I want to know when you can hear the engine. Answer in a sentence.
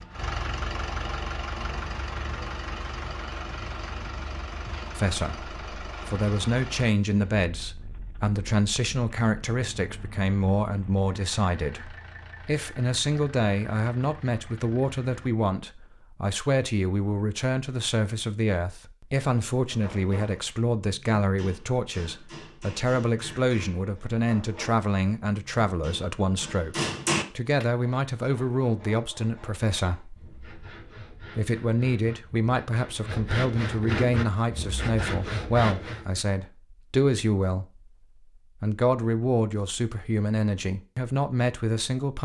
The engine can be heard from 0.0 to 15.3 s.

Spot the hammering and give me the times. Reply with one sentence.
You can hear the hammering from 19.6 to 27.6 s.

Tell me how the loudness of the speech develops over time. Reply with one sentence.
The loudness of the speech stays about the same.